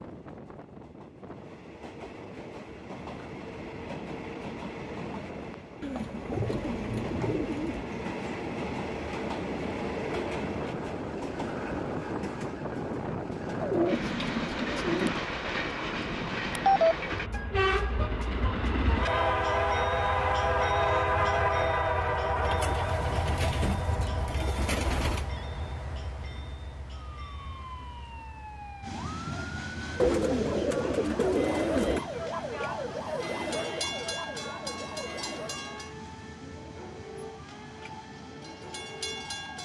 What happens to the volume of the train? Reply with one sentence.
The loudness of the train goes up, then down.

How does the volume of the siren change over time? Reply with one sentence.
The loudness of the siren goes up, then down.